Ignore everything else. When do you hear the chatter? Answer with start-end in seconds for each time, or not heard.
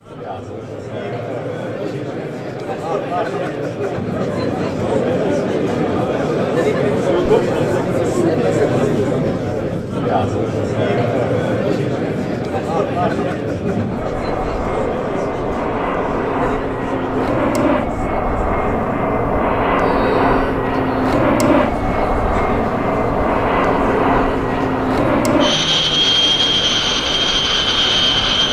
0.0-28.4.